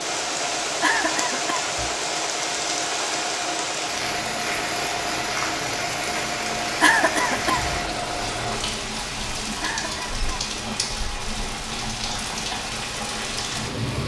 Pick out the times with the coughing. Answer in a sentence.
The coughing can be heard from 0.8 to 1.6 s, from 6.8 to 7.7 s and from 9.6 to 10.2 s.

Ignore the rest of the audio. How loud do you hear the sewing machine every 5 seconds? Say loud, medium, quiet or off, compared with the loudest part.
loud, loud, off.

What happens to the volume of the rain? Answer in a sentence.
The loudness of the rain stays about the same.